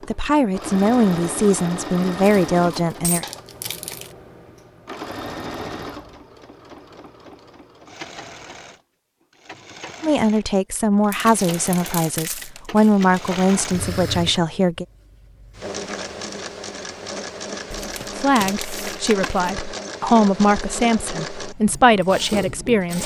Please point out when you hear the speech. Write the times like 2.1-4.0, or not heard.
0.1-3.2, 10.0-14.8, 18.1-23.0.